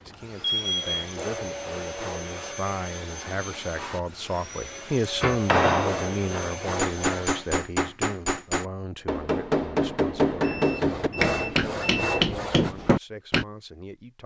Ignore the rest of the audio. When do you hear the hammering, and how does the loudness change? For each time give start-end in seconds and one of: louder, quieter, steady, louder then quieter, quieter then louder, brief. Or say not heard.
5.2-13.4 steady.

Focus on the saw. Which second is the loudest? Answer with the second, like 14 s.
11 s.